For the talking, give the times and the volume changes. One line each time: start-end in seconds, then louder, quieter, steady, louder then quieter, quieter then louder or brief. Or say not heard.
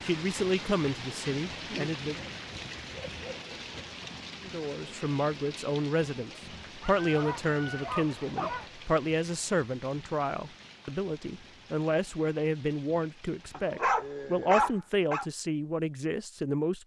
0.0-2.3 brief
4.4-16.8 steady.